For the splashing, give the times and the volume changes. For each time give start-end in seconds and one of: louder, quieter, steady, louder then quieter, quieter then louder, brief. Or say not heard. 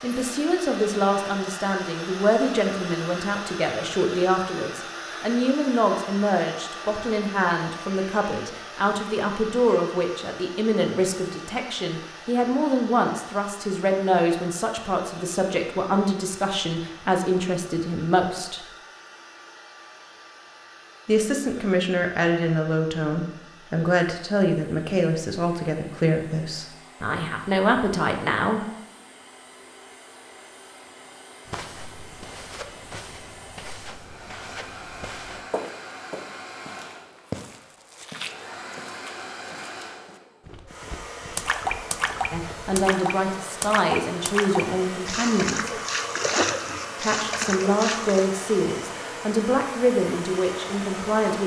41.4-48.3 steady.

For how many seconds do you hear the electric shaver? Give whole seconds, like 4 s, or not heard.
not heard.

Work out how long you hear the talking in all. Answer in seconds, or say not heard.
34 s.